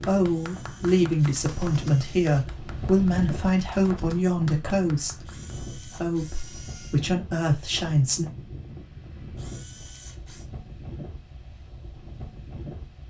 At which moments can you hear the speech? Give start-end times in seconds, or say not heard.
0.1-8.2.